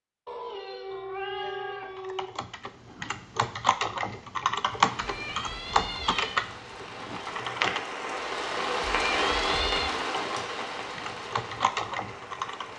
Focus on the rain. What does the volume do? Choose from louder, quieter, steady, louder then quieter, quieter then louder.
louder then quieter.